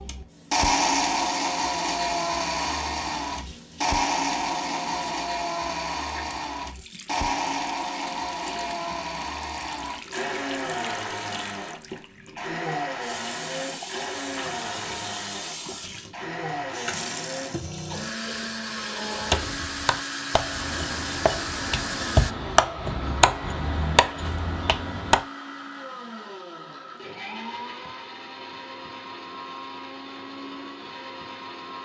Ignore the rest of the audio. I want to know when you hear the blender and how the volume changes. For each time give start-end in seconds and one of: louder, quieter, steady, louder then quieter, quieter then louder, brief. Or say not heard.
0.0-31.8 quieter.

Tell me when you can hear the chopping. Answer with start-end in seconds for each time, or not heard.
19.1-25.2.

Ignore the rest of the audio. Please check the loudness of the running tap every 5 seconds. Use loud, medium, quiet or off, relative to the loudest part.
quiet, medium, medium, loud, loud, off, off.